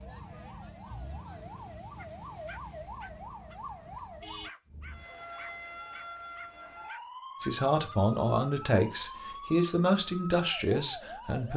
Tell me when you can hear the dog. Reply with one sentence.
The dog can be heard from 1.9 to 8.0 s.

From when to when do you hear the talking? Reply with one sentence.
The talking can be heard from 7.4 to 11.5 s.